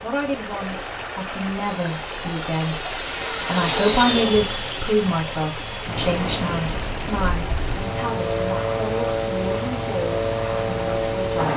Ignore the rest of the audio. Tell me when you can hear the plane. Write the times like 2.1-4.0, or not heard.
0.0-11.5.